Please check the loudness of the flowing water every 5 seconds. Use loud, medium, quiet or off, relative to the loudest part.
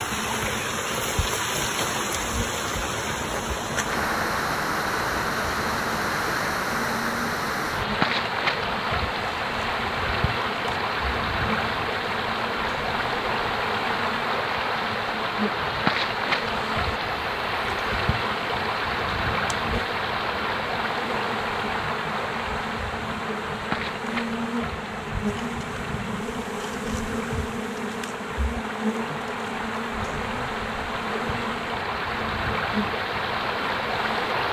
loud, loud, loud, loud, loud, medium, loud.